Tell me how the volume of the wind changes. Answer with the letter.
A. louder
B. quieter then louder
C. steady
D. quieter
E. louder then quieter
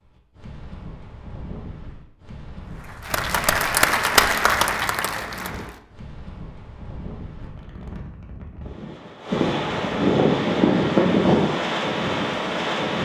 A.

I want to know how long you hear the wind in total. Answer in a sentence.
The wind can be heard for 13 seconds in total.